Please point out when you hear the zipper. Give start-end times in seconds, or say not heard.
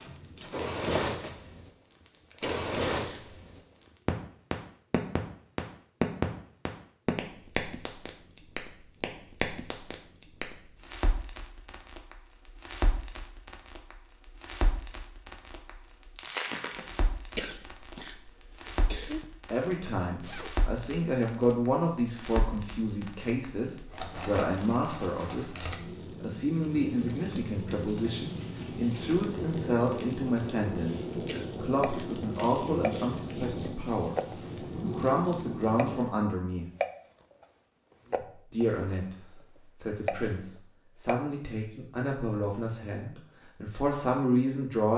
20.2-20.6.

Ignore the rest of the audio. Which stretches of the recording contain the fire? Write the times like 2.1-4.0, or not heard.
0.2-36.0.